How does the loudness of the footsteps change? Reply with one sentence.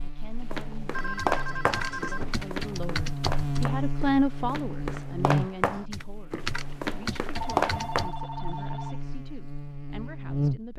The volume of the footsteps goes down, then up.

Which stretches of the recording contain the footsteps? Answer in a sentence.
You can hear the footsteps from 0.4 to 8.1 s.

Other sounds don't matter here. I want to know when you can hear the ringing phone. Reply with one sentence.
The ringing phone can be heard from 0.9 to 2.5 s and from 7.3 to 9.0 s.